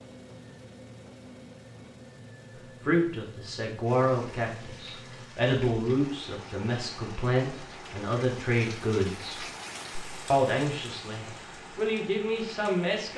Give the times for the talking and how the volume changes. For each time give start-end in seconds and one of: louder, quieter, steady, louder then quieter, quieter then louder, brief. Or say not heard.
2.8-9.4 steady
10.3-13.1 brief.